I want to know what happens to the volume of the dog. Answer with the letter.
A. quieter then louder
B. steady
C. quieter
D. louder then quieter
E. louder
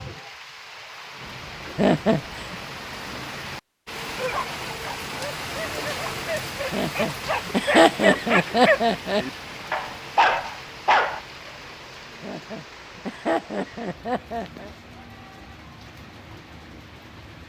E.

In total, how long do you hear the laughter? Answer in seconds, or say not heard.
6 s.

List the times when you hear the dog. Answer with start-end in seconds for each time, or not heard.
4.2-11.2.